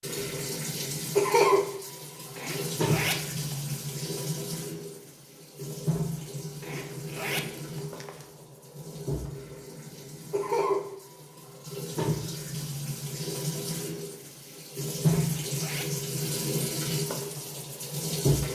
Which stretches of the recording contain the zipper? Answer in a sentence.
You can hear the zipper from 2.4 to 3.8 s, from 6.6 to 8.2 s and from 15.1 to 16.1 s.